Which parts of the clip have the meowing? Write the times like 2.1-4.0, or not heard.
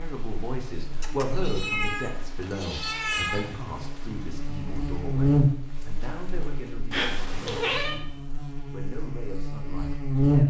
1.0-3.5, 6.9-8.0.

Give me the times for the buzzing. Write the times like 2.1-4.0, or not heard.
0.0-10.4.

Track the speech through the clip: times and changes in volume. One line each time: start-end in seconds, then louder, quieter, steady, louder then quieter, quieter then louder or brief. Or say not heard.
0.0-10.4 quieter.